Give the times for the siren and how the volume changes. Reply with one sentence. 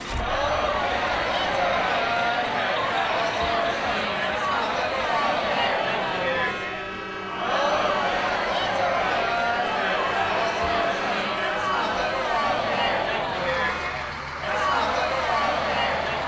You can't hear the siren here.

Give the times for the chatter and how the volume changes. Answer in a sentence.
You can hear the chatter from 0.0 to 16.2 s, at a steady volume.